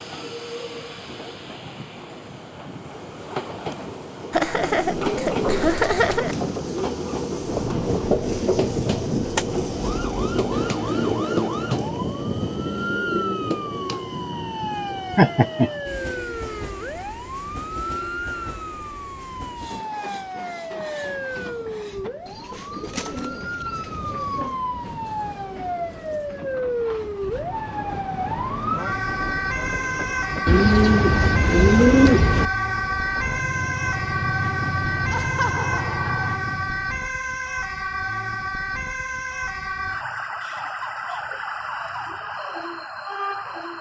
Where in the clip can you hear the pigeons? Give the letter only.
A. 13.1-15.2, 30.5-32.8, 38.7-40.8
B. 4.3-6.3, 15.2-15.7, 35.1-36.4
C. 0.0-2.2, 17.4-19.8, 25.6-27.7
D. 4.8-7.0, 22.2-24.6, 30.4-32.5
D.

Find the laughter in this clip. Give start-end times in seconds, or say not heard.
4.3-6.3, 15.2-15.7, 35.1-36.4.